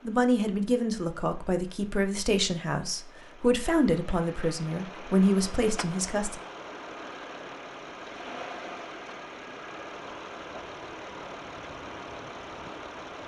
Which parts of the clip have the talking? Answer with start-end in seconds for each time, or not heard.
0.1-6.4.